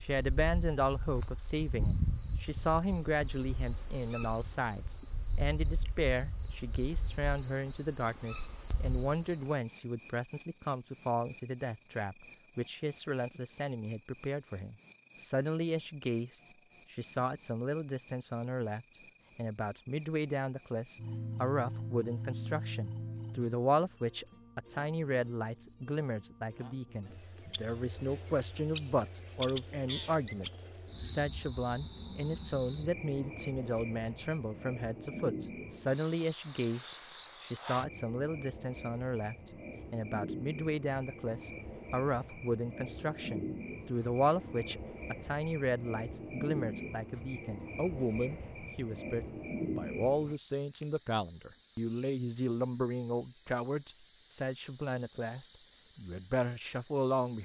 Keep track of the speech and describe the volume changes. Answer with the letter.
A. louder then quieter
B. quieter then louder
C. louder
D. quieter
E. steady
E.